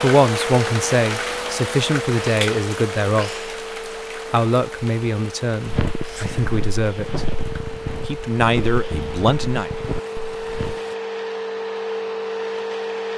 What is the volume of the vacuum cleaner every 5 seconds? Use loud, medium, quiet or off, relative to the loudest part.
loud, medium, loud.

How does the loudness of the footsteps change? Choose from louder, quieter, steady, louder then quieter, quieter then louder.
steady.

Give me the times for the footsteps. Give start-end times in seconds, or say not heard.
5.7-10.8.